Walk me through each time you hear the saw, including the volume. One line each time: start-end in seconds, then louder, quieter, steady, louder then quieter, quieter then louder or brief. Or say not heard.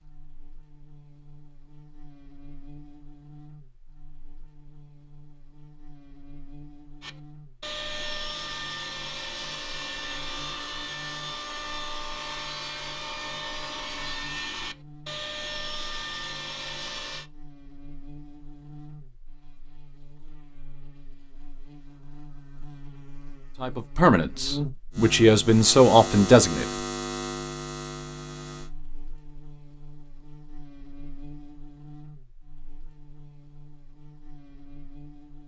7.0-17.3 steady.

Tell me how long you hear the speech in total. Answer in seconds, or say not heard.
3 s.